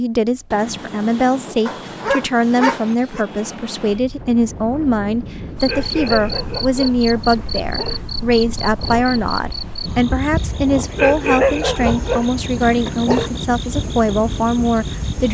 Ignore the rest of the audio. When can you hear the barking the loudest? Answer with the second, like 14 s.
11 s.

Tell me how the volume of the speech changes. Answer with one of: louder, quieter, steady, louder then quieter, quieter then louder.
steady.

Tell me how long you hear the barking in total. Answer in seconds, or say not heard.
7 s.